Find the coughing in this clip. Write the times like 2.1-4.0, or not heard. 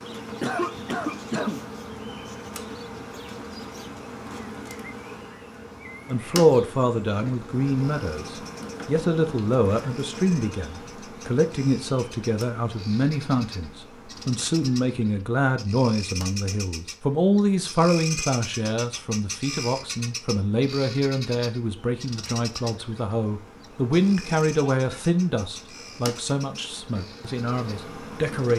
0.4-1.6, 24.7-25.1.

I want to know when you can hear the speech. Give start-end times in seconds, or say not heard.
6.0-28.5.